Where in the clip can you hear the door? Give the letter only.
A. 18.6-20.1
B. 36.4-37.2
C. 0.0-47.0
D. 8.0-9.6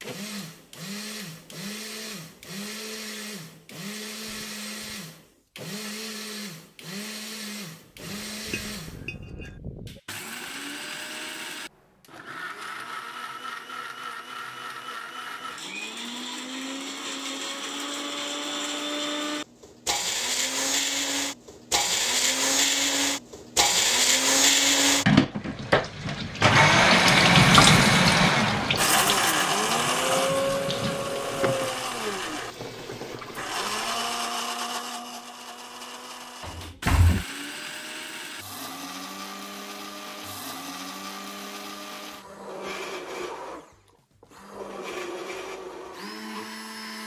B.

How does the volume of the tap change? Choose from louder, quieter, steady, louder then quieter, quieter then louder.
louder then quieter.